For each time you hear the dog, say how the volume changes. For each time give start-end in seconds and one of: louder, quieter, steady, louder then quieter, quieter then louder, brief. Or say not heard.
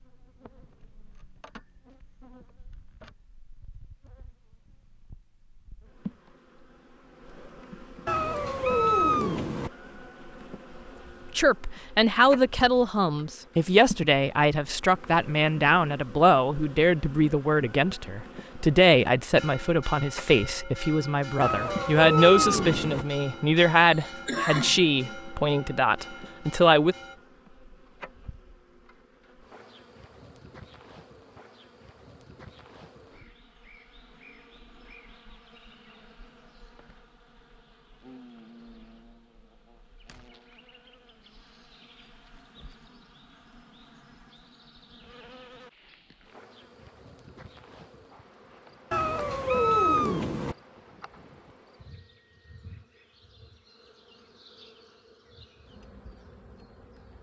not heard.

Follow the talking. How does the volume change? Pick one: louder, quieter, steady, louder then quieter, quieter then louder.
steady.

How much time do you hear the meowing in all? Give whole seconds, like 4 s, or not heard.
5 s.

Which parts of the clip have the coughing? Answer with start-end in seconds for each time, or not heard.
23.9-24.9.